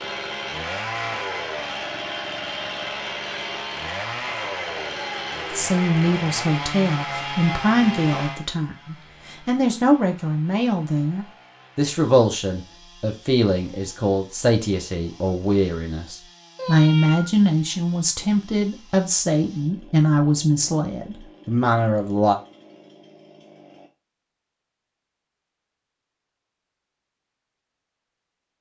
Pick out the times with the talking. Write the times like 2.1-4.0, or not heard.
5.5-22.4.